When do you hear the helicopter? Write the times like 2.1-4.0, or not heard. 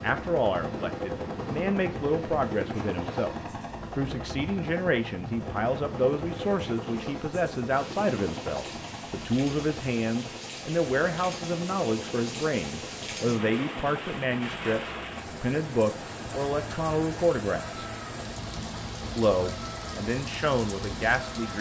0.0-21.5.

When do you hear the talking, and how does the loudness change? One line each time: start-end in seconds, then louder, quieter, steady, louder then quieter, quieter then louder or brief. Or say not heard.
0.0-17.9 steady
19.1-21.5 brief.